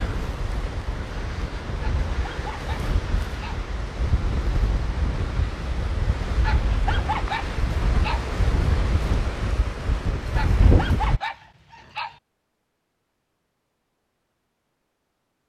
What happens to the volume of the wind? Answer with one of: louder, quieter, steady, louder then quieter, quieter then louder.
louder.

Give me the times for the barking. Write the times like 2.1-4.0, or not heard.
1.8-3.6, 6.4-8.2, 10.3-12.2.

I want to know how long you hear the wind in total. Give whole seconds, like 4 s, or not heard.
11 s.